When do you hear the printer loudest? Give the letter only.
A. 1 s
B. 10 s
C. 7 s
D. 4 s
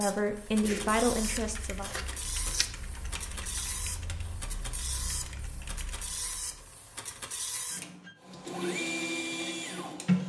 B.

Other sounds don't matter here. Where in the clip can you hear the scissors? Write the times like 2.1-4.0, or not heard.
0.6-2.6.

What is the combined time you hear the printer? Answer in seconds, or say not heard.
10 s.